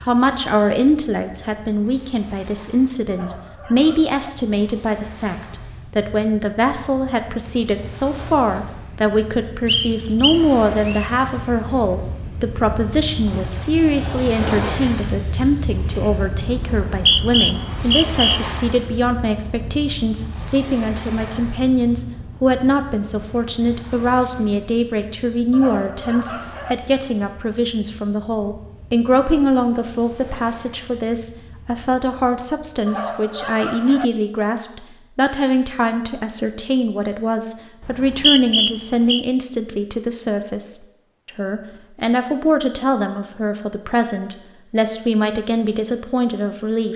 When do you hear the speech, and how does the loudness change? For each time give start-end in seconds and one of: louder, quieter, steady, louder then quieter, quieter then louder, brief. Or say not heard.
0.0-46.9 steady.